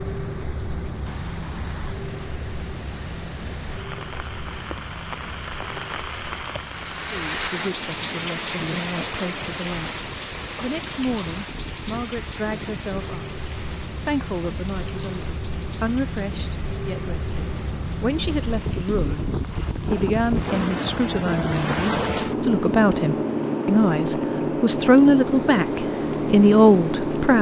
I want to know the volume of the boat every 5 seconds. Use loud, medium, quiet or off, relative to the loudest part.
medium, quiet, quiet, medium, loud, loud.